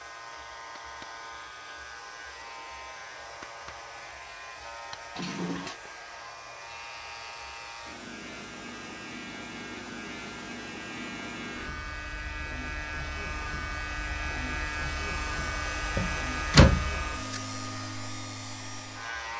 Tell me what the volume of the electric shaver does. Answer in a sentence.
The volume of the electric shaver goes up.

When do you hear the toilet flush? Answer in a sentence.
You can hear the toilet flush from 5.2 to 5.8 s.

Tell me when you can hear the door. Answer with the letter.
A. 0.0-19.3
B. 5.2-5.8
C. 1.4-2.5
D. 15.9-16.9
D.